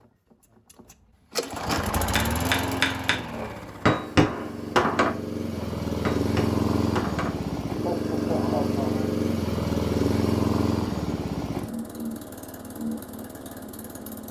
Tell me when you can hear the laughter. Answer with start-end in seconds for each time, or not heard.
7.8-9.1.